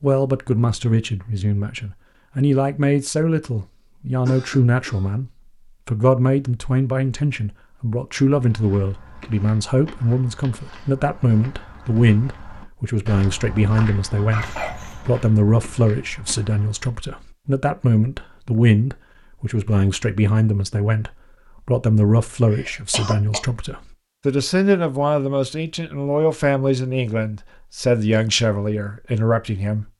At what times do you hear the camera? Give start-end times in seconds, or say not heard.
not heard.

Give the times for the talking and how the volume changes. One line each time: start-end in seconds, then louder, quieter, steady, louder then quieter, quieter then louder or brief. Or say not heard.
0.0-29.9 steady.